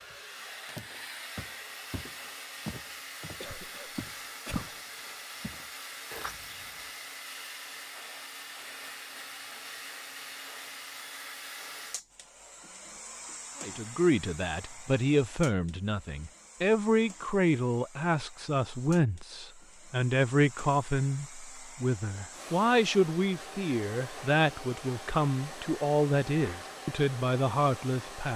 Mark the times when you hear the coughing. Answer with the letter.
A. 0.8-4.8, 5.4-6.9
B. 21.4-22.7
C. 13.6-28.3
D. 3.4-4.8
D.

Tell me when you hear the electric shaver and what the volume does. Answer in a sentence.
The electric shaver can't be heard in this clip.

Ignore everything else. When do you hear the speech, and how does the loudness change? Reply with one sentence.
You can hear the speech from 13.6 to 28.3 s, at a steady volume.